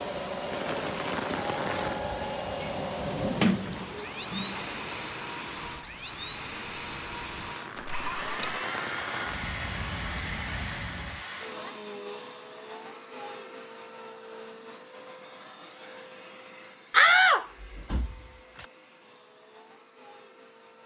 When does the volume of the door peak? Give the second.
17 s.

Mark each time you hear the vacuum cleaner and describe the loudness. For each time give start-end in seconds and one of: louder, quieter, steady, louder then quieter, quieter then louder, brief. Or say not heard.
0.0-20.8 quieter.